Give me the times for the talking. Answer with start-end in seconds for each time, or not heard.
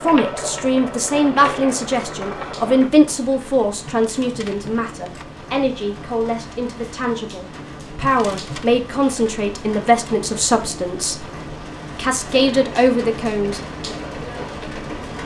0.0-11.3, 11.9-13.6.